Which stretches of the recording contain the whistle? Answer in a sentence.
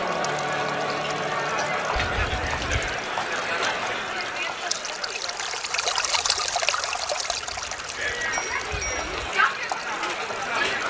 The whistle can't be heard in this clip.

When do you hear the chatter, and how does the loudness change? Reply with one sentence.
You can hear the chatter from 0.0 to 10.8 s, getting quieter then louder.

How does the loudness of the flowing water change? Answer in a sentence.
The volume of the flowing water goes up, then down.